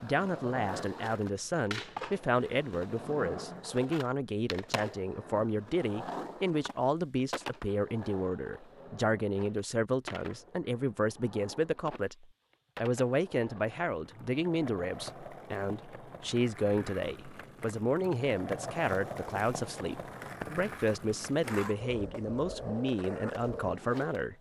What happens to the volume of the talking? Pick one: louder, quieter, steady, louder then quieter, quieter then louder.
steady.